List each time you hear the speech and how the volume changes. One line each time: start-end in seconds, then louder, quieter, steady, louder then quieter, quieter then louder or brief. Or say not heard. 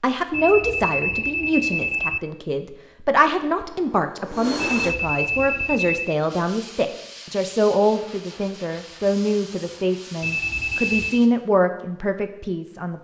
0.0-12.9 steady.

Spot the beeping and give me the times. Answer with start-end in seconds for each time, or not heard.
0.3-2.2, 4.5-6.2, 10.2-11.2.